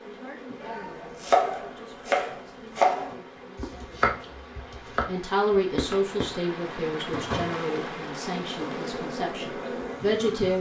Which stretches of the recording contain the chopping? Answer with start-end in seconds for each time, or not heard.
0.6-6.1.